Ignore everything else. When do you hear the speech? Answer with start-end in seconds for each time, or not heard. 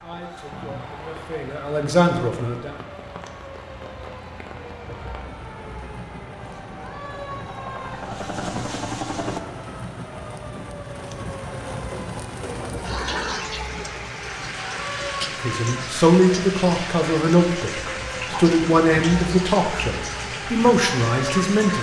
0.0-2.8, 15.2-21.7.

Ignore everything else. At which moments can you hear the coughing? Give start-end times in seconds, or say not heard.
not heard.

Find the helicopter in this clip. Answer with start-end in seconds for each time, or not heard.
6.2-9.4.